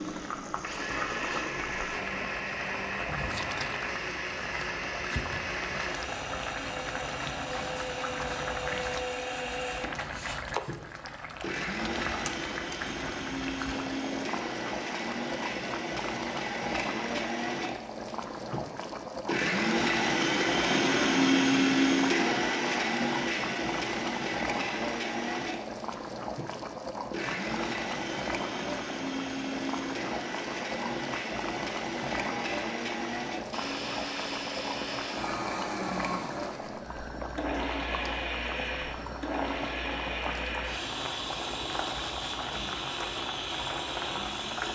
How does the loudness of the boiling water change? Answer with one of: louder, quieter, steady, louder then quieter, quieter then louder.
steady.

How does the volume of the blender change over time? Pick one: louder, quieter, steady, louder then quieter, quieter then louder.
louder then quieter.